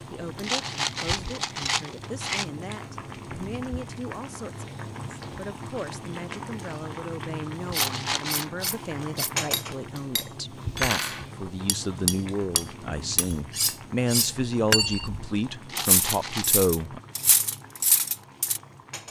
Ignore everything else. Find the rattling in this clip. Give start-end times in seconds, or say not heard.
0.4-2.5, 7.7-8.4, 15.7-16.4.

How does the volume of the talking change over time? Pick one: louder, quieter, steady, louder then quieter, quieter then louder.
louder.